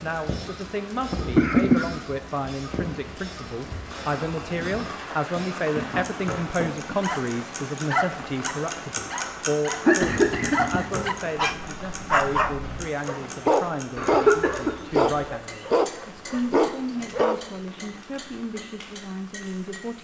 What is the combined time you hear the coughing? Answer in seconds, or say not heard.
3 s.